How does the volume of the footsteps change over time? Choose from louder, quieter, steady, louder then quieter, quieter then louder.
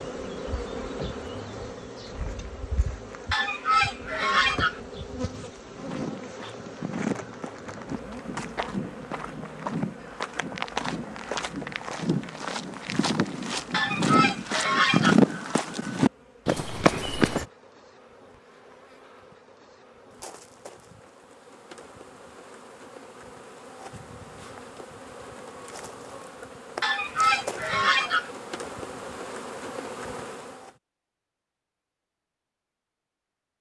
louder.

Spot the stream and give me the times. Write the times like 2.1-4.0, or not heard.
not heard.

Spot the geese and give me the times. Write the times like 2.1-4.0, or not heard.
3.3-4.8, 13.7-15.2, 26.8-28.3.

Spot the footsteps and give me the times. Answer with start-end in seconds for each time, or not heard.
5.7-17.4.